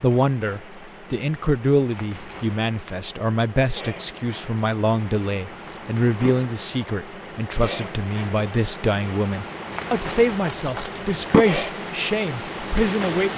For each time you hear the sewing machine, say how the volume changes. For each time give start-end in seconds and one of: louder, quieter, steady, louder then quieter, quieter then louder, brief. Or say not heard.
not heard.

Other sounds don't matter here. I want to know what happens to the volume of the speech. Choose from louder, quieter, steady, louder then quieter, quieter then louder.
steady.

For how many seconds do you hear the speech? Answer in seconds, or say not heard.
13 s.